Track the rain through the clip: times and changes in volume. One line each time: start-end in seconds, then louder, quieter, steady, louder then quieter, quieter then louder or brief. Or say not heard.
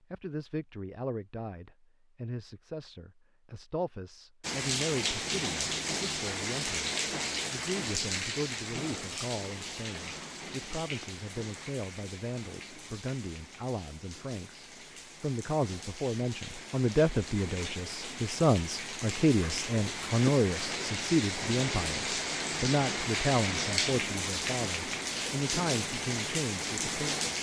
4.4-27.3 quieter then louder.